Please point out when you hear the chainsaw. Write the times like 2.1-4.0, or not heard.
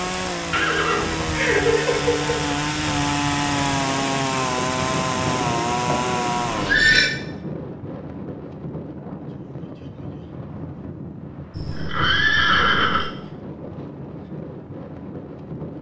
0.0-6.8.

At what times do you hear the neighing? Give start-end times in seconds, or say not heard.
0.5-2.5, 5.2-7.1, 11.5-13.1.